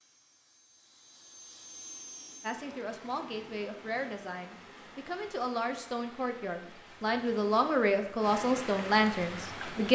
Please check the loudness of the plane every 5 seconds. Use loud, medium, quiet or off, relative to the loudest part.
loud, off.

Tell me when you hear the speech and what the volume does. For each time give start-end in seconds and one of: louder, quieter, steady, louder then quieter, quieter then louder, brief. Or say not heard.
2.4-9.9 louder.